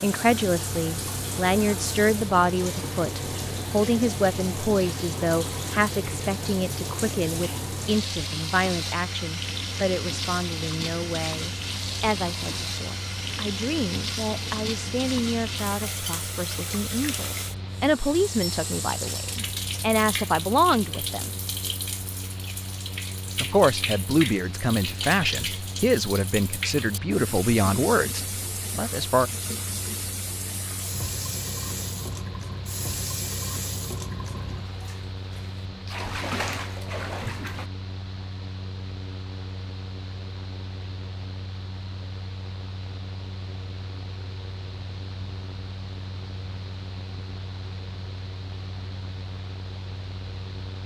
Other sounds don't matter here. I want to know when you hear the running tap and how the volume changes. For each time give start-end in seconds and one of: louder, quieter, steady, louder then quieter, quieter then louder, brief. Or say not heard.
0.0-37.7 steady.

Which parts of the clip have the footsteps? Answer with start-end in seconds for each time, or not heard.
not heard.